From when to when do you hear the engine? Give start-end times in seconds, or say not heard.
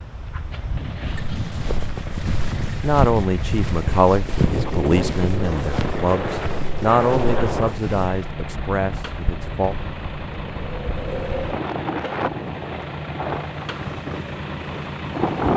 0.0-15.5.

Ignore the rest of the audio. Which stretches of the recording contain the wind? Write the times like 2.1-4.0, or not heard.
0.0-15.5.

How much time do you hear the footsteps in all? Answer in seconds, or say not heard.
7 s.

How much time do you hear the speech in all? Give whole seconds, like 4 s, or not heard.
7 s.